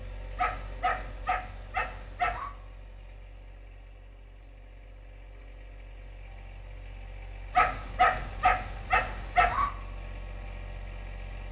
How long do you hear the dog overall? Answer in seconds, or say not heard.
4 s.